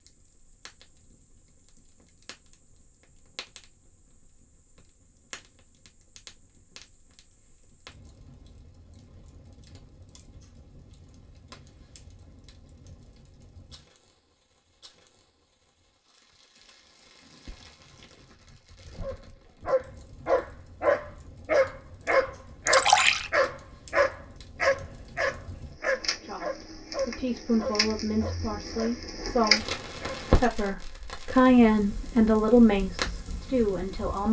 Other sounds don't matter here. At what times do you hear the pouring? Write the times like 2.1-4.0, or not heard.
22.6-23.3.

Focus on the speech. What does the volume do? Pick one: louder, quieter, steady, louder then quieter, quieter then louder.
louder then quieter.